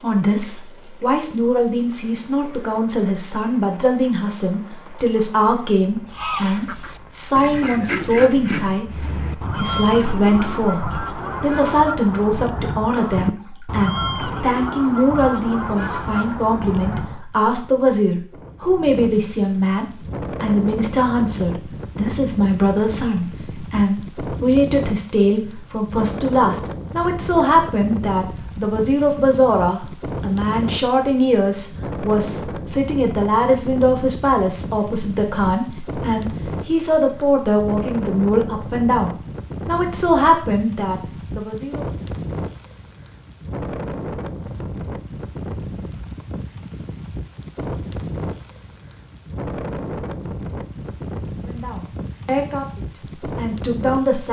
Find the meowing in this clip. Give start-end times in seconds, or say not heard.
not heard.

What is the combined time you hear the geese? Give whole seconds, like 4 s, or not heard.
11 s.